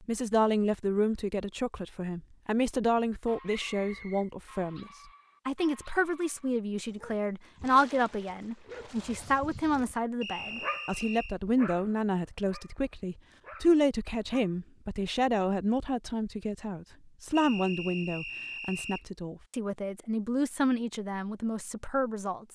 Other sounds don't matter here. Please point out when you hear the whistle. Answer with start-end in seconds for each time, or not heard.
3.5-4.3, 10.2-11.3, 17.4-19.1.